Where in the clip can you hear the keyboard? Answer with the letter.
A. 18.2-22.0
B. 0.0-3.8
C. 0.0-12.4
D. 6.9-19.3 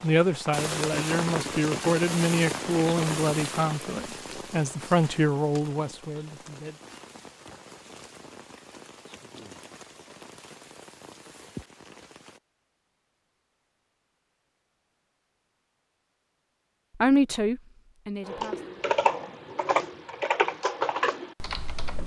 A.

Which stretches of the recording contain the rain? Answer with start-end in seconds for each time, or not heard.
0.0-12.4.